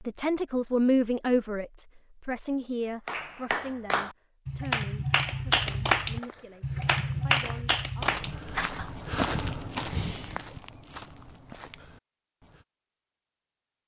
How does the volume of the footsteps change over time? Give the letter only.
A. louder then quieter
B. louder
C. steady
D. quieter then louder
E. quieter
A.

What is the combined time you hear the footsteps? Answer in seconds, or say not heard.
7 s.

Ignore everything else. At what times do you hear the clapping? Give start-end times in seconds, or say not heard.
3.0-8.9.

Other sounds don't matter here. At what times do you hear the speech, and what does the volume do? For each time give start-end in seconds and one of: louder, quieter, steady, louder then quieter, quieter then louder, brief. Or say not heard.
0.0-8.2 quieter.